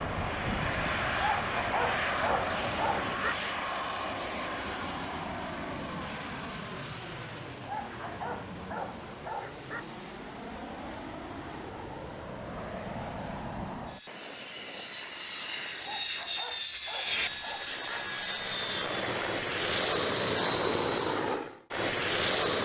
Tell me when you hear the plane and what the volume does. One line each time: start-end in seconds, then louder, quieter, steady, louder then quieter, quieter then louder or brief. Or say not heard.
0.0-22.6 quieter then louder.